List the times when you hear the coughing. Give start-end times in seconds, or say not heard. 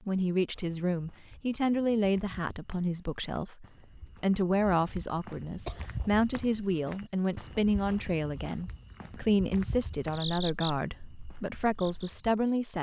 5.7-6.2.